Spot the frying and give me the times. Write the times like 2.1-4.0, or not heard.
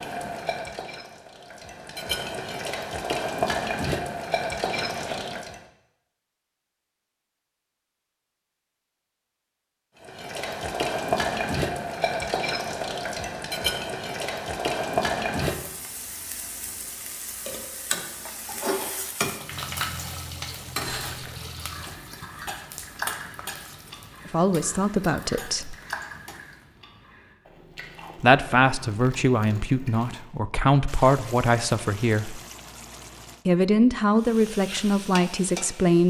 0.0-5.6, 10.0-26.7, 34.2-36.0.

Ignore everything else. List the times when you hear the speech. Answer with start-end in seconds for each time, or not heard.
24.2-25.8, 28.2-32.4, 33.5-36.0.